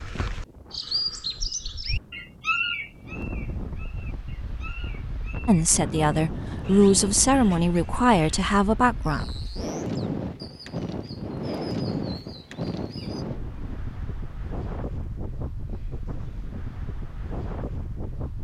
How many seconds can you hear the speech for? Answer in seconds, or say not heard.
4 s.